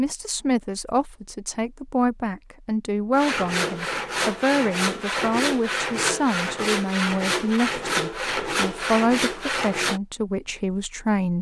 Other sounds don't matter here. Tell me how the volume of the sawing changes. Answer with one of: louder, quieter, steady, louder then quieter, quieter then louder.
steady.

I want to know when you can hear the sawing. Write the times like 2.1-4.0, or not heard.
3.1-10.0.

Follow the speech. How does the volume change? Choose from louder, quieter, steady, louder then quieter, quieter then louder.
steady.